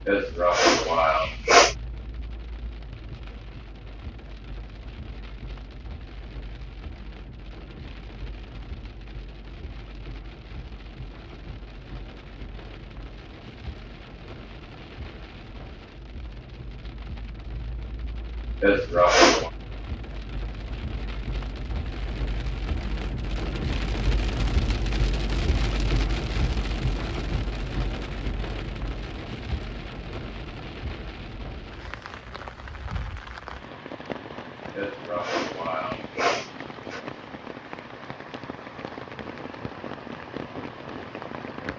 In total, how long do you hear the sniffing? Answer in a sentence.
You can hear the sniffing for 5 seconds altogether.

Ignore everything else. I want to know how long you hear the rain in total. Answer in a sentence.
The rain can be heard for 42 seconds in total.